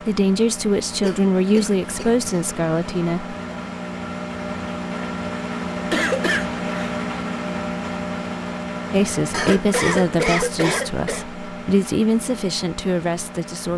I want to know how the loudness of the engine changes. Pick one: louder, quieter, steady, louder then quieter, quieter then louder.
louder then quieter.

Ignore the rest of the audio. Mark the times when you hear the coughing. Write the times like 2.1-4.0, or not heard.
1.0-2.3, 5.9-7.0, 9.3-11.2.